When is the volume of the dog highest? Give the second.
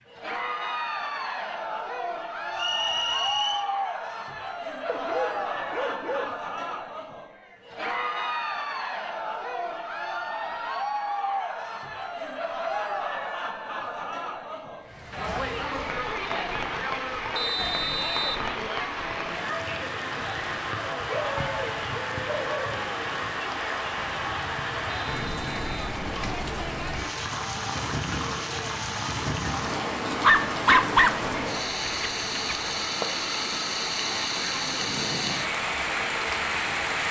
31 s.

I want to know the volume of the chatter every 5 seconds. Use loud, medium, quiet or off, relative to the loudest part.
loud, loud, loud, loud, loud, medium, medium, off.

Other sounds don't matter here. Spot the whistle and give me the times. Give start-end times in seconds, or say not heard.
2.5-3.6, 17.4-18.4, 25.1-25.9.